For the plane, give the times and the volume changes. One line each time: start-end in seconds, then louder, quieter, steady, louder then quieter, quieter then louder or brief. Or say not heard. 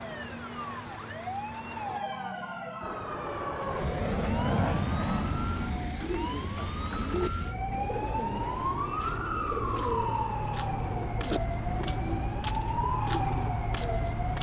2.8-12.0 quieter.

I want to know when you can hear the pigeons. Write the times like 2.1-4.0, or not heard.
6.0-14.2.